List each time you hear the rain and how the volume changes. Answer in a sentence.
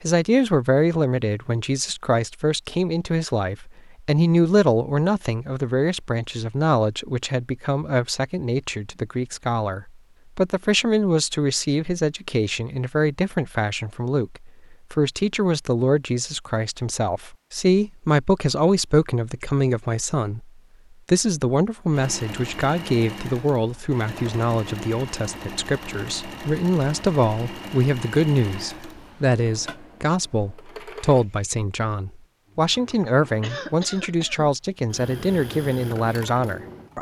The rain can't be heard in this clip.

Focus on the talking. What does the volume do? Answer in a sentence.
The volume of the talking stays about the same.